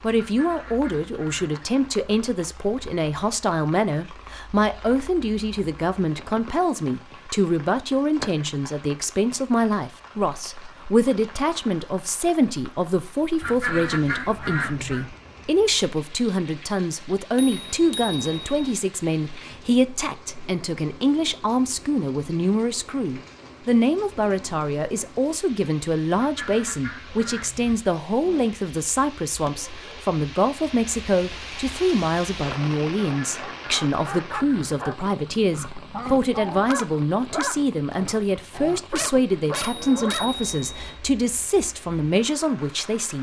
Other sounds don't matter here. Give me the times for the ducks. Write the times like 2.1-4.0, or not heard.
0.1-1.6, 13.4-15.1, 26.1-27.8, 33.1-34.8.